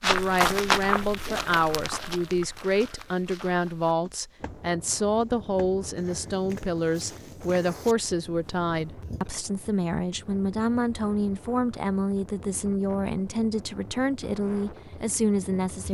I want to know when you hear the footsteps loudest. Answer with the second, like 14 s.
1 s.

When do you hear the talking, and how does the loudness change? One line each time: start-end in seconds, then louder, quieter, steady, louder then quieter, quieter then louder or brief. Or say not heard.
0.0-15.8 steady.